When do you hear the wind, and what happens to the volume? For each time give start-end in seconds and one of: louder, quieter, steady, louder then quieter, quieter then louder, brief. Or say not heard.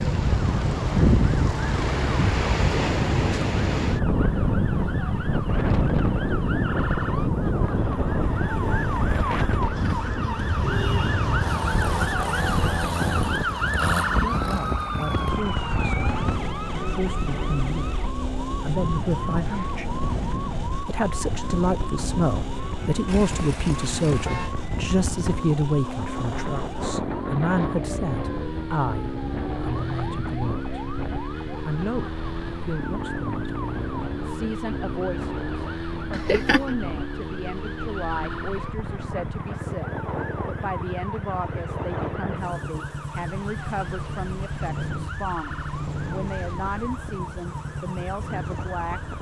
0.0-49.1 quieter.